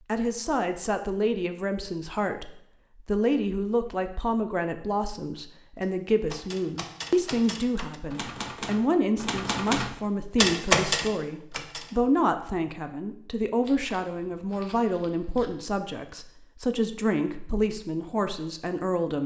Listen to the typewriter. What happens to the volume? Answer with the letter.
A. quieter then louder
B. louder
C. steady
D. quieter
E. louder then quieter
B.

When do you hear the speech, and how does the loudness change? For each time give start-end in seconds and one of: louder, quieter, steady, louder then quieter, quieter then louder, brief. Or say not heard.
0.1-19.2 steady.